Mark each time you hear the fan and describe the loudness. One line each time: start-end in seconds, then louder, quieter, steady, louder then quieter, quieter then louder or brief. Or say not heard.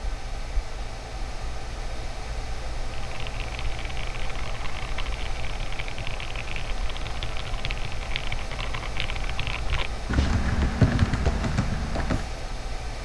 0.0-13.0 steady.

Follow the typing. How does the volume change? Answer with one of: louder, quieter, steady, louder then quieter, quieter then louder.
louder.